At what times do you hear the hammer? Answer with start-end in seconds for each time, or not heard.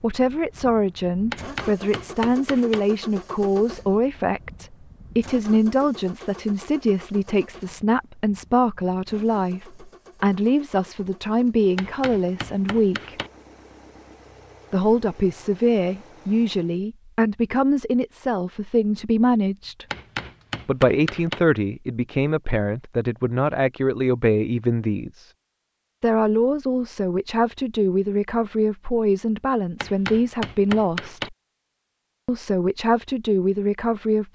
1.3-2.8, 11.8-13.3, 19.9-21.4, 29.8-31.3.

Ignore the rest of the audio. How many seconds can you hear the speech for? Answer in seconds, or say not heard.
30 s.